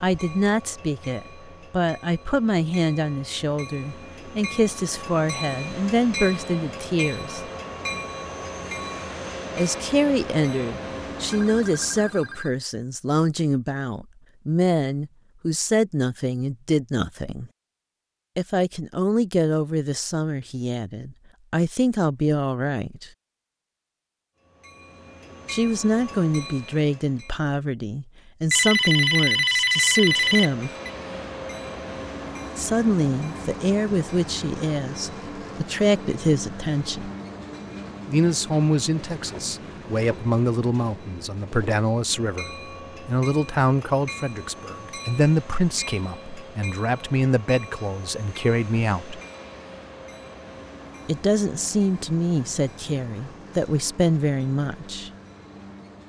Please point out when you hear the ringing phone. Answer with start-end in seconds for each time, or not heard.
11.2-12.6, 28.5-30.9.